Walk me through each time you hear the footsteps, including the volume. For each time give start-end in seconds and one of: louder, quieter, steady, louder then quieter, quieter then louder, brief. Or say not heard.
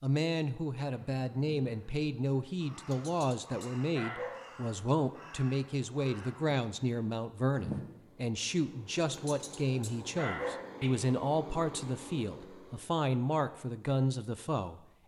not heard.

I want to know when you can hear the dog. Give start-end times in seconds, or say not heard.
2.9-4.4, 9.1-10.9.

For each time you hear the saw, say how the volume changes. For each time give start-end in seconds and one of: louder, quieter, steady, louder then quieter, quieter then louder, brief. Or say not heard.
not heard.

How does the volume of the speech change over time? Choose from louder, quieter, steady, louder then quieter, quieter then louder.
steady.